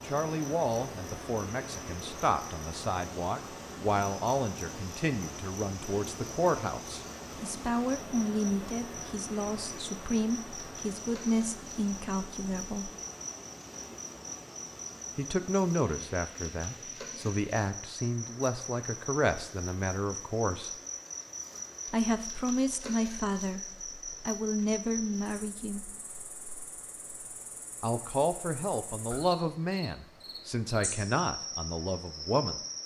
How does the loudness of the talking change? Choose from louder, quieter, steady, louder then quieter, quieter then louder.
steady.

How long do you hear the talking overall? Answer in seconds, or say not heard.
27 s.